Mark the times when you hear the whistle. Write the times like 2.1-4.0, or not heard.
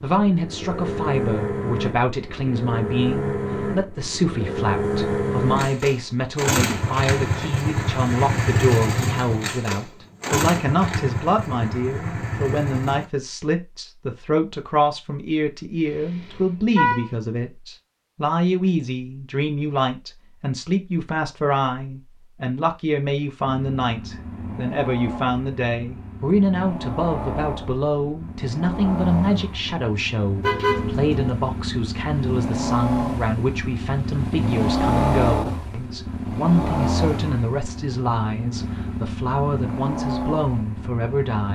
not heard.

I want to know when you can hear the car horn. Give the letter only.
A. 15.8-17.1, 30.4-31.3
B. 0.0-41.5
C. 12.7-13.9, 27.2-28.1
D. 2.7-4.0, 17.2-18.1
A.